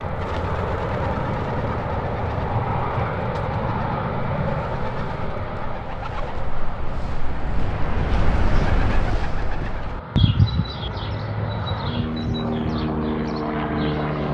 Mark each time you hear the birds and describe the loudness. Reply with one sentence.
You can hear the birds from 0.0 to 14.2 s, getting louder then quieter.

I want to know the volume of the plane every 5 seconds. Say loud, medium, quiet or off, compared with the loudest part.
loud, medium, loud.